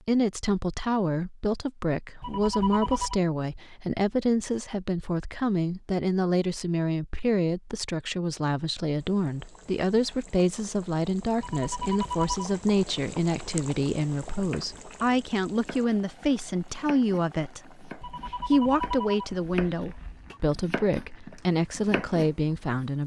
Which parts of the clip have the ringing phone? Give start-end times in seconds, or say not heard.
2.2-3.2, 11.4-12.6, 18.0-20.4.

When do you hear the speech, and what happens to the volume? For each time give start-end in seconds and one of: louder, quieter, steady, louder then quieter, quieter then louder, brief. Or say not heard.
0.1-23.0 steady.